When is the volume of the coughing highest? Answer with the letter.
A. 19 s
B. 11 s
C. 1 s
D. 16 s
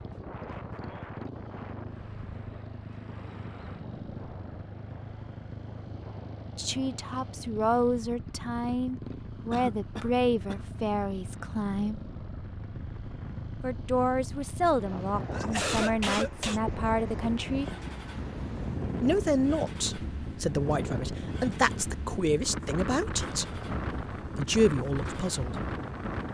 D.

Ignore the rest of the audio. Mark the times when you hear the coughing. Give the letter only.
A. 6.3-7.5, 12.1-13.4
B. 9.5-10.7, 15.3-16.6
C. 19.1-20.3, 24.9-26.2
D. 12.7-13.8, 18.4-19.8
B.